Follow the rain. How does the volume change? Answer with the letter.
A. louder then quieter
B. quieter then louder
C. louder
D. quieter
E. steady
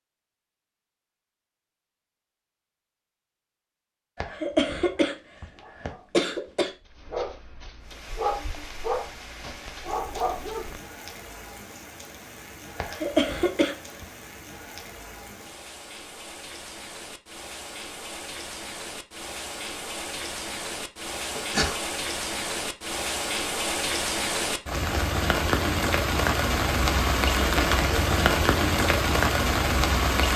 C.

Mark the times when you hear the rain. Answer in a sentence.
You can hear the rain from 7.8 to 30.3 s.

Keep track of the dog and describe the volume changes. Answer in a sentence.
The volume of the dog goes up.